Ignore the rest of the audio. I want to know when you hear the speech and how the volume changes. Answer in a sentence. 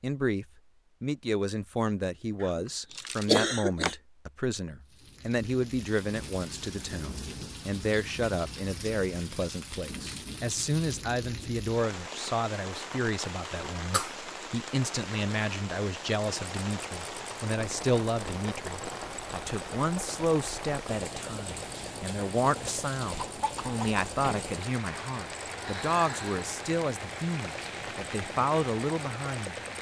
You can hear the speech from 0.0 to 29.6 s, at a steady volume.